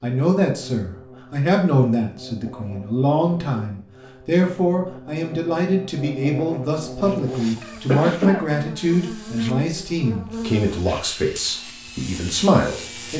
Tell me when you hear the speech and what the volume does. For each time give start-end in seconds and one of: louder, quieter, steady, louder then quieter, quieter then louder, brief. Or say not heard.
0.0-13.1 steady.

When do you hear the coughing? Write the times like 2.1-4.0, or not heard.
7.8-8.4.